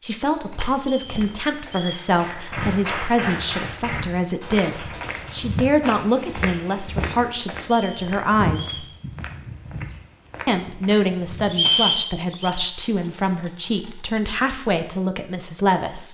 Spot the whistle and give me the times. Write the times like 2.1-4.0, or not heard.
0.8-2.1, 7.7-8.9, 11.5-12.5.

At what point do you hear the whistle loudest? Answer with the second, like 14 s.
12 s.